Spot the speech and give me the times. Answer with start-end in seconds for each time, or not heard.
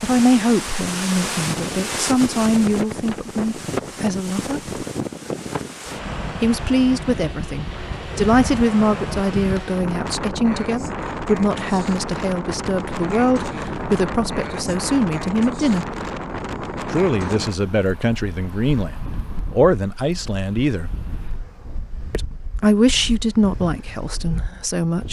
0.0-4.6, 6.4-15.8, 16.9-20.9, 22.1-25.0.